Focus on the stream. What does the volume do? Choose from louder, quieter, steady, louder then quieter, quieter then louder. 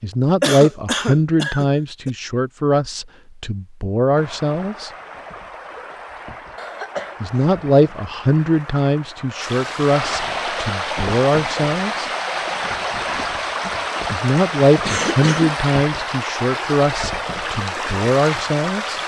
louder.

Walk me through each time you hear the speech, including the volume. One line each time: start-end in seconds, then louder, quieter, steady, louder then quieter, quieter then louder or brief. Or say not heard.
0.0-4.9 quieter then louder
7.2-12.1 quieter then louder
14.1-19.0 quieter then louder.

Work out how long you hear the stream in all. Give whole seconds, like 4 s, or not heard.
15 s.